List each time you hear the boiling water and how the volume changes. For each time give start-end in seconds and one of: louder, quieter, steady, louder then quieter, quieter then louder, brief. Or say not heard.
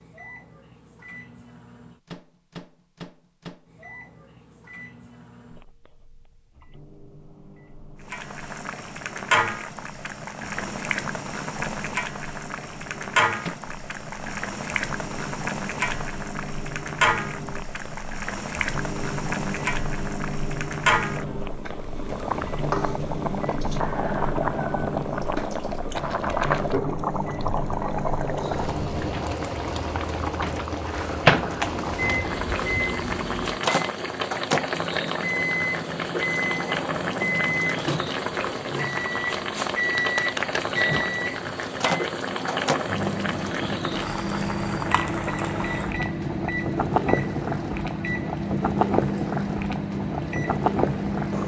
8.0-51.4 steady.